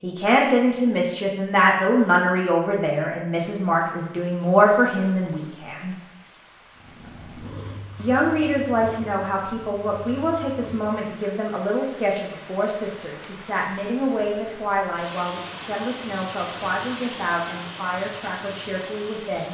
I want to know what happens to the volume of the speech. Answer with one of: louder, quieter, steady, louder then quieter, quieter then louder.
quieter.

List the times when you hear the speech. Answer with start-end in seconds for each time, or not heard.
0.0-6.0, 8.0-19.5.